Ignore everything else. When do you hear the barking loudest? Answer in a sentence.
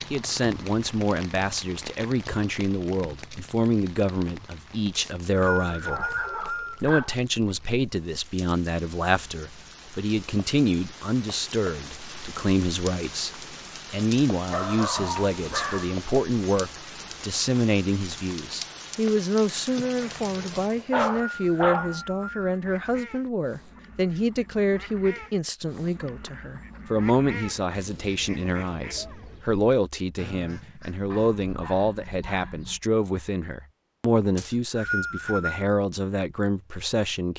The volume of the barking peaks at 21 seconds.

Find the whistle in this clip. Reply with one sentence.
The whistle can be heard from 5.0 to 6.8 s, from 20.6 to 22.6 s and from 34.4 to 35.6 s.